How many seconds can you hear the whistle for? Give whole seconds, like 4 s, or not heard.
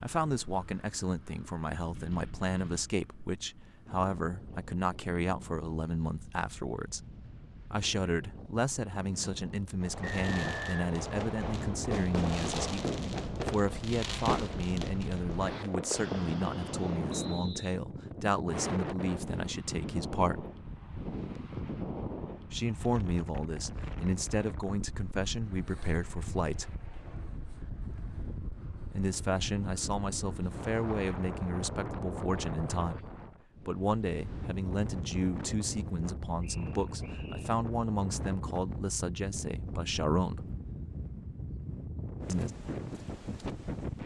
3 s.